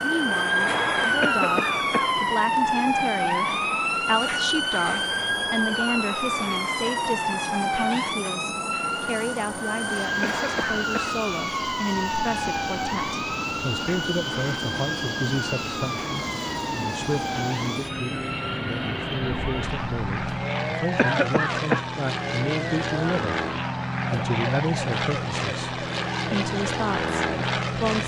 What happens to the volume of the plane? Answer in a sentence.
The loudness of the plane goes up.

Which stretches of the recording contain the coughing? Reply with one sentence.
You can hear the coughing from 1.2 to 2.1 s, from 10.2 to 11.2 s and from 20.9 to 21.9 s.